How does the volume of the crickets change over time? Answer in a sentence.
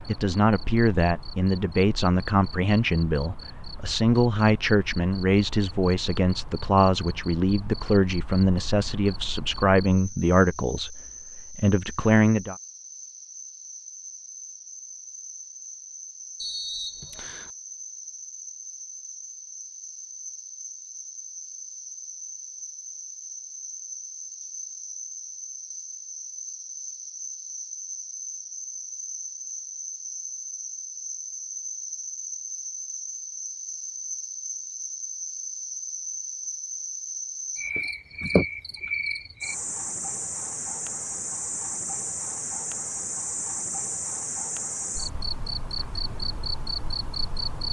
The volume of the crickets goes up.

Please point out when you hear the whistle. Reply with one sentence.
You can hear the whistle from 16.4 to 17.5 s.